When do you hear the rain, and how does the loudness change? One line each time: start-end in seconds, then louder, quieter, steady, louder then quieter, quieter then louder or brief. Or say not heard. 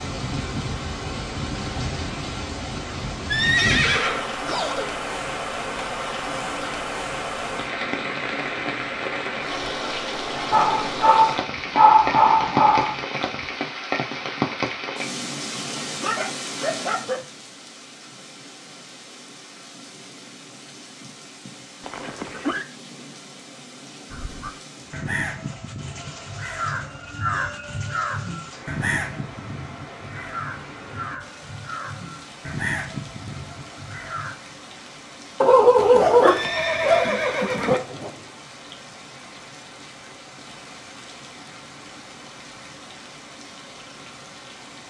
0.0-44.8 quieter.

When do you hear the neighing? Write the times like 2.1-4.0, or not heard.
3.2-5.0, 21.8-22.6, 35.8-37.8.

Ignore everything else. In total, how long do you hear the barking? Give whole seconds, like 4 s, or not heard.
7 s.